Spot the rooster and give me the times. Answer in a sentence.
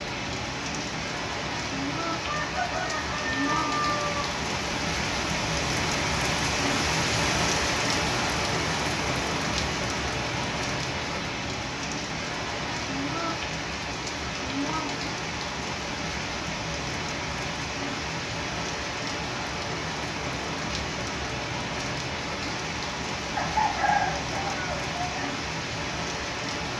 The rooster can be heard from 2.2 to 4.2 s and from 23.4 to 25.2 s.